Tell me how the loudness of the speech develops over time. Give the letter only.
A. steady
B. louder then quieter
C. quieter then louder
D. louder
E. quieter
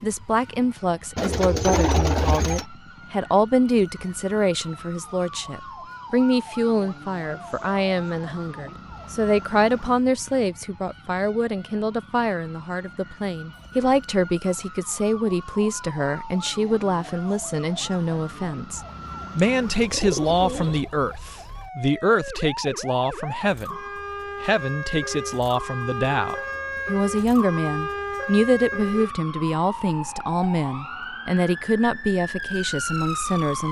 A.